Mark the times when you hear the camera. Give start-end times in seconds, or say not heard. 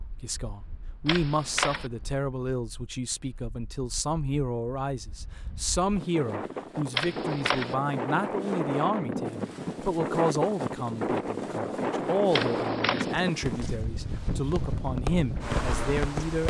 1.1-1.9, 6.9-7.8, 12.3-13.2.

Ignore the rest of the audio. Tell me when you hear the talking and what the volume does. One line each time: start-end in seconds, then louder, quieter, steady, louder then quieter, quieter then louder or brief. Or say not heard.
0.2-16.4 steady.